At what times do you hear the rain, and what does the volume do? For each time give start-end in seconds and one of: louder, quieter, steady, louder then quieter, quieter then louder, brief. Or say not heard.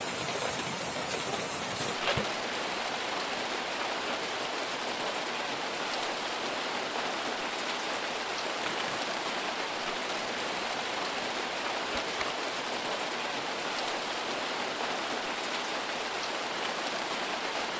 0.0-17.7 steady.